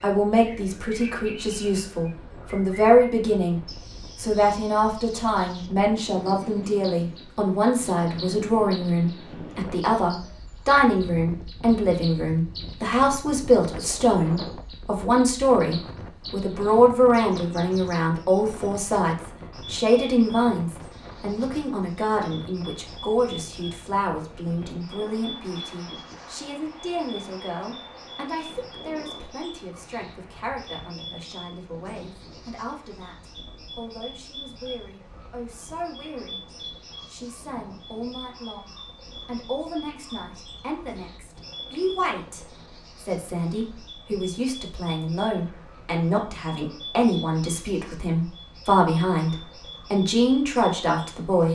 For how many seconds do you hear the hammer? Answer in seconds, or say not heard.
not heard.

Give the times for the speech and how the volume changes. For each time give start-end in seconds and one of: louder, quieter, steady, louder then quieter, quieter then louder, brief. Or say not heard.
0.0-51.5 quieter then louder.